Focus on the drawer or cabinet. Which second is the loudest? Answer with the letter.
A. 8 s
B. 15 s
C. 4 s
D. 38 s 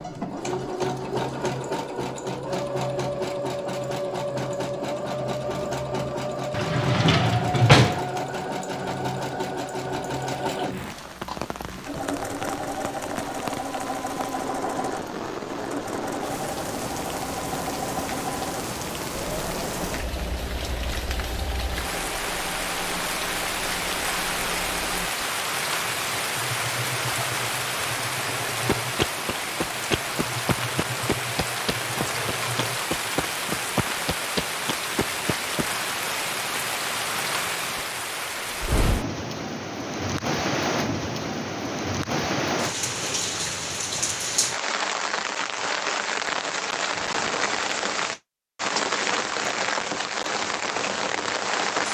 A.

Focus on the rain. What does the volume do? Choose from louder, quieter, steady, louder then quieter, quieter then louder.
louder.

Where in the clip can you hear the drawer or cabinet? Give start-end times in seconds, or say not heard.
6.5-8.1.